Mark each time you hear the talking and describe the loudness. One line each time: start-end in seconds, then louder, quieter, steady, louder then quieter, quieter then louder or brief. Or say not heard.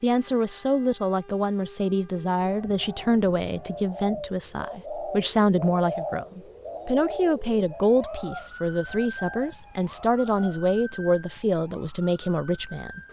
0.0-13.0 steady.